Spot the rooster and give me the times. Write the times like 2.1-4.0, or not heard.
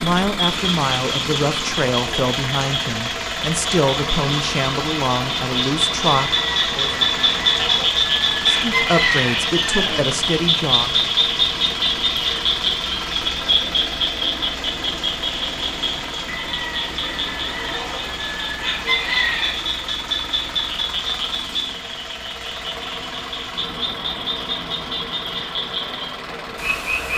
6.3-10.1, 16.3-19.6.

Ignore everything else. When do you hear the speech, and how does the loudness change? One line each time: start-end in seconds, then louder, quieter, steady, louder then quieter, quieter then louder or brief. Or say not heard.
0.0-6.9 steady
8.4-11.0 brief.